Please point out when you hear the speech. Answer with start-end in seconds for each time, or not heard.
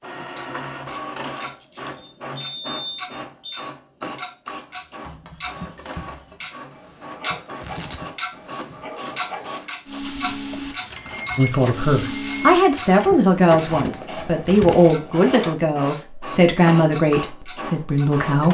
11.3-18.4.